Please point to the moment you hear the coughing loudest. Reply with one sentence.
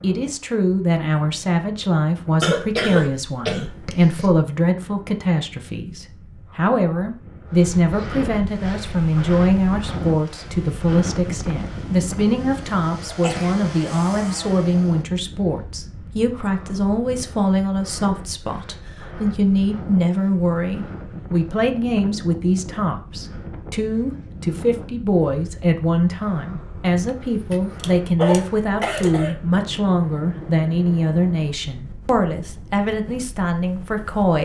The loudest moment of the coughing is at 3 seconds.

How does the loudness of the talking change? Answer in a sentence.
The loudness of the talking stays about the same.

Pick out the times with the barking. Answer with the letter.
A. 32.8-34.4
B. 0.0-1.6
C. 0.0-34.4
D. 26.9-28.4
D.